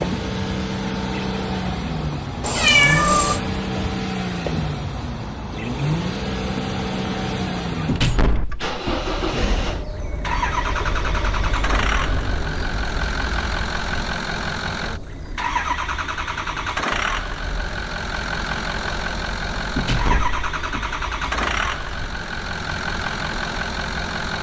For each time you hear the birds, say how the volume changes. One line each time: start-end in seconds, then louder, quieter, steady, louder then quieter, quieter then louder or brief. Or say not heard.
0.0-24.3 quieter.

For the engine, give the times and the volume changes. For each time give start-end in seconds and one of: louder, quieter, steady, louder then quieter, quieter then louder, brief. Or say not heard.
0.0-24.3 steady.